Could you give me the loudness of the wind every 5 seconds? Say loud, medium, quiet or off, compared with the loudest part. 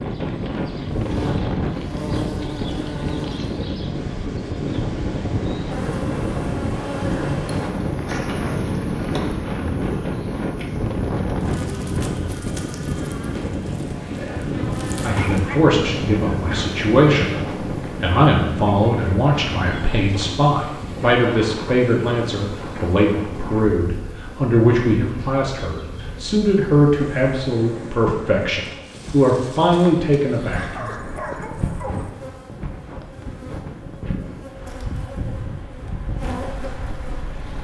loud, loud, loud, loud, medium, quiet, medium, medium.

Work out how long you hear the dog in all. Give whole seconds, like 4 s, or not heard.
4 s.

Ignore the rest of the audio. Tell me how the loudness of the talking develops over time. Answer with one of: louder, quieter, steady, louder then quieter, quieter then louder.
steady.